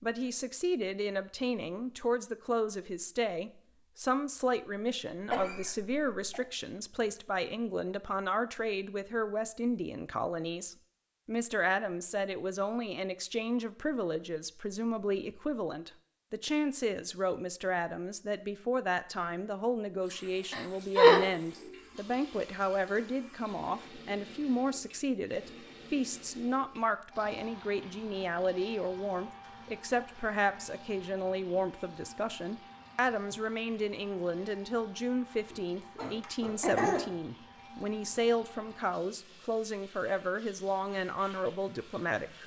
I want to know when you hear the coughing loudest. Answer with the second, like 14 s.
21 s.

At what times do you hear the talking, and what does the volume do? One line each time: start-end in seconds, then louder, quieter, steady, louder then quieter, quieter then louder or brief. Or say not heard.
0.0-42.4 steady.